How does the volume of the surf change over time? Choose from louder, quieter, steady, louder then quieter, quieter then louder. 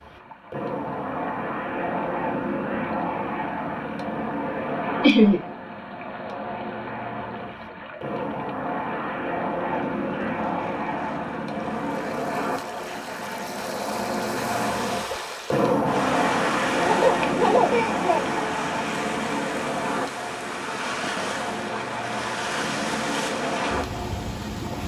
louder.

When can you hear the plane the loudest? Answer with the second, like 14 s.
16 s.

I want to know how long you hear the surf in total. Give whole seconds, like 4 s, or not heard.
25 s.